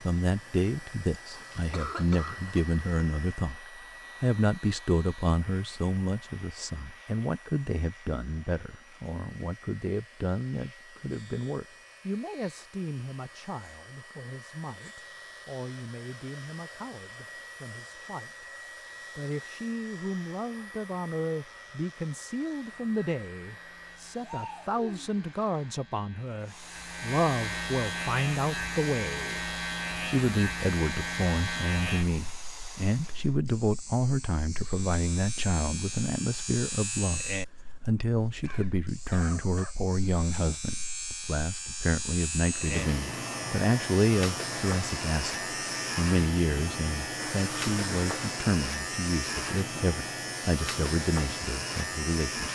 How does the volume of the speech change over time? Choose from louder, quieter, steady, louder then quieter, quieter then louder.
quieter then louder.